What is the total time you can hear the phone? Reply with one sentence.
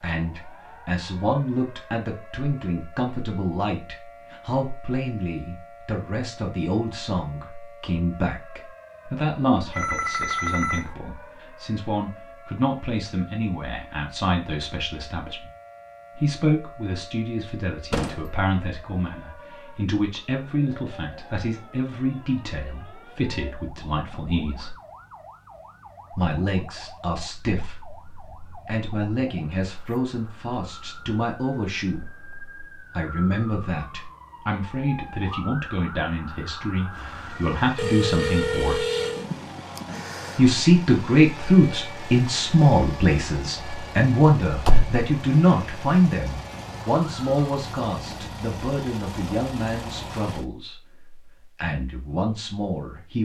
The phone can be heard for 3 seconds in total.